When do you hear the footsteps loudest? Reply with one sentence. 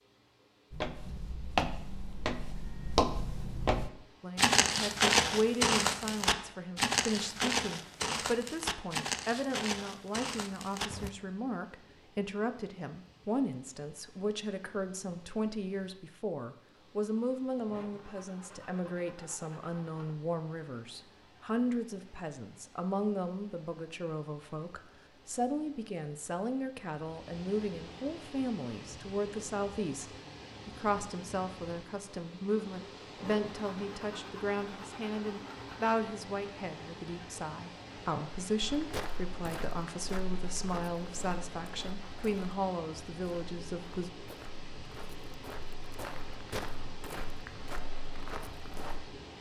The volume of the footsteps peaks at 5 seconds.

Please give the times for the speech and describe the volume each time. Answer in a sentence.
The speech can be heard from 4.2 to 44.1 s, at a steady volume.